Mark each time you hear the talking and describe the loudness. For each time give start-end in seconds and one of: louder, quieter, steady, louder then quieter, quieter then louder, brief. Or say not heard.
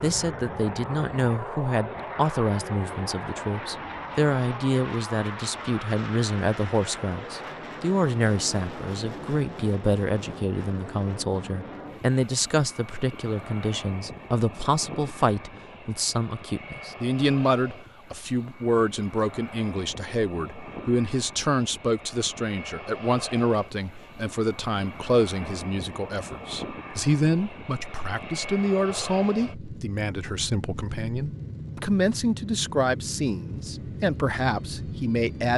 0.0-35.5 steady.